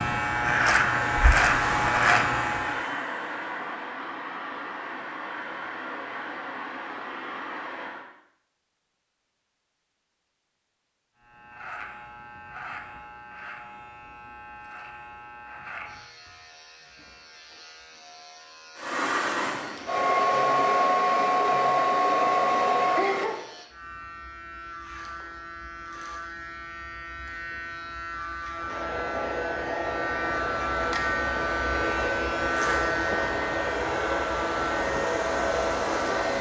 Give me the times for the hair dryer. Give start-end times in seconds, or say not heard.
0.0-8.1, 18.8-23.4, 28.5-36.3.